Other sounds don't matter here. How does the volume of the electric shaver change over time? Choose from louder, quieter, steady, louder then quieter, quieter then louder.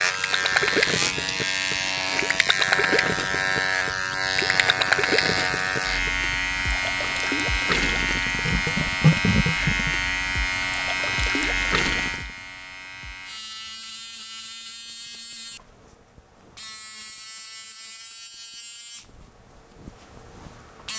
quieter.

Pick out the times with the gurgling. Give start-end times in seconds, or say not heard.
0.1-12.2.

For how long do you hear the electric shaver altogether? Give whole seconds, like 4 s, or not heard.
21 s.